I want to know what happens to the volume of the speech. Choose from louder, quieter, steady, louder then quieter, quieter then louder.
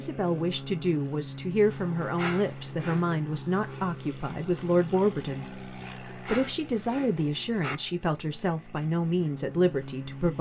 steady.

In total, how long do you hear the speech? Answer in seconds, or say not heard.
10 s.